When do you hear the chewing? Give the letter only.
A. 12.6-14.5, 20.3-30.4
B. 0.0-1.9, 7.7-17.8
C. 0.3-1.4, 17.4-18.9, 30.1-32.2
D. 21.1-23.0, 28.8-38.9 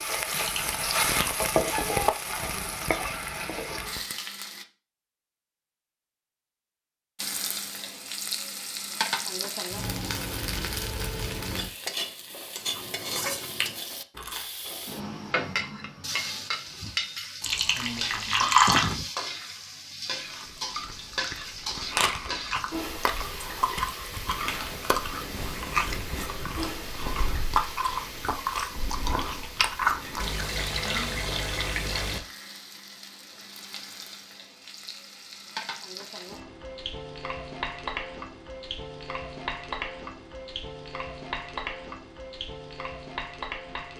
A.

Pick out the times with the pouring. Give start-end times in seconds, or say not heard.
0.3-1.4, 17.4-18.9, 30.1-32.2.